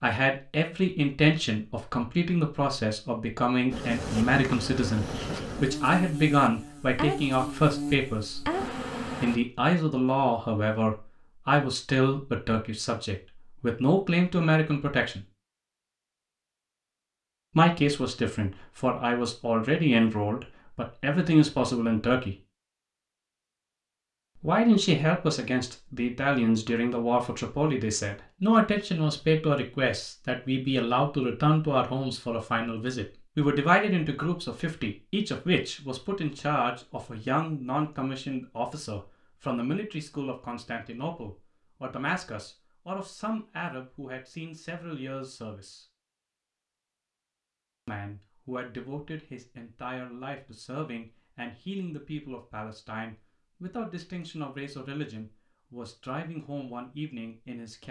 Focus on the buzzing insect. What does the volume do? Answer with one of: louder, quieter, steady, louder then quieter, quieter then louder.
steady.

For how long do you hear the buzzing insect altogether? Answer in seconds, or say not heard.
6 s.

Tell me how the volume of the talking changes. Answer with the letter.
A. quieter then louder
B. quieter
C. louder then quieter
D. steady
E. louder
B.